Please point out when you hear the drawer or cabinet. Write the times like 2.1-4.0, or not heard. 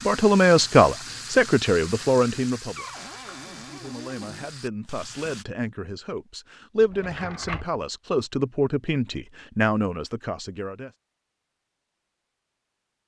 2.8-4.5, 6.8-7.7.